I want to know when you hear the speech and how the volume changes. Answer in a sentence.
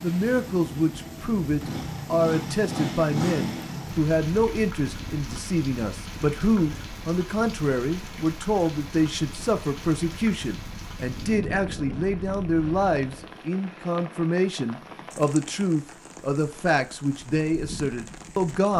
The speech can be heard from 0.0 to 18.7 s, at a steady volume.